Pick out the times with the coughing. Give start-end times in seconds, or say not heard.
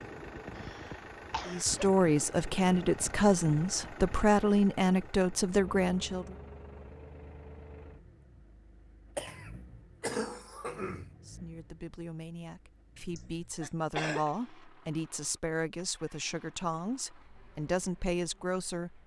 0.6-1.9, 9.2-11.2, 13.2-14.3.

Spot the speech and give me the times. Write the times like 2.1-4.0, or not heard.
1.4-6.2, 11.2-19.0.